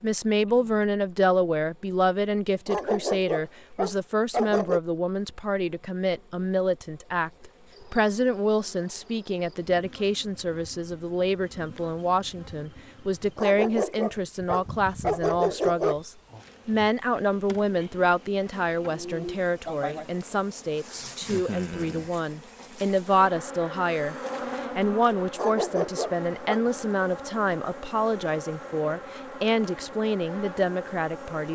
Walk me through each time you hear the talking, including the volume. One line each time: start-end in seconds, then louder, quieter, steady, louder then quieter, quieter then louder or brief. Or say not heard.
0.0-31.5 steady.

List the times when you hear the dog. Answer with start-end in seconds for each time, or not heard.
2.6-4.8, 13.3-15.9, 25.4-26.6.